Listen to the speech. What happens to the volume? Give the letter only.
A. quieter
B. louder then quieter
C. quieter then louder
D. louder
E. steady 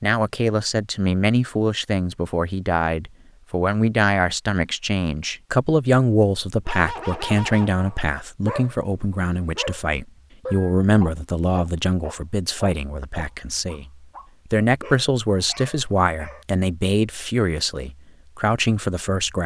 E.